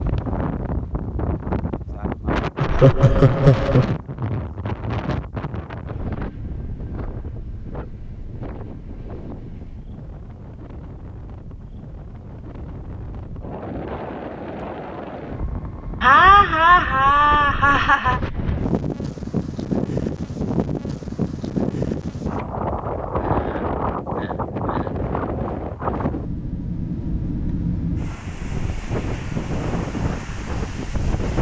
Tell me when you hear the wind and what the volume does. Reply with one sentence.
The wind can be heard from 0.0 to 31.3 s, getting quieter then louder.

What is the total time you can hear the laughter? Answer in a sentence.
The laughter can be heard for 6 seconds in total.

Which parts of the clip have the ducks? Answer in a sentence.
The ducks can't be heard in this clip.